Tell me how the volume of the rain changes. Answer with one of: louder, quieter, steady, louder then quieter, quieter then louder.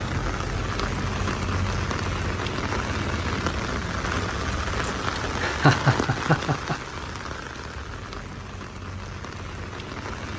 quieter.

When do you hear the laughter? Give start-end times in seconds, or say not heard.
5.3-6.8.